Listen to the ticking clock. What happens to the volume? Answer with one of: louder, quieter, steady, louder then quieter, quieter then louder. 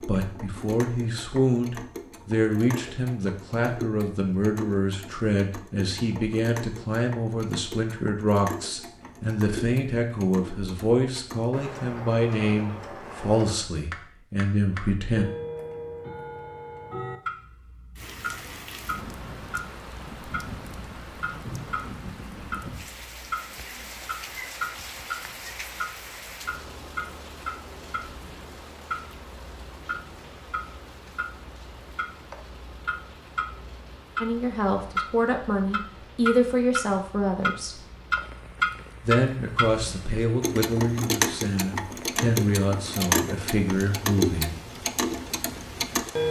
louder.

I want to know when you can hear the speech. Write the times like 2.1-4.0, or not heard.
0.0-15.2, 34.2-37.8, 39.0-44.5.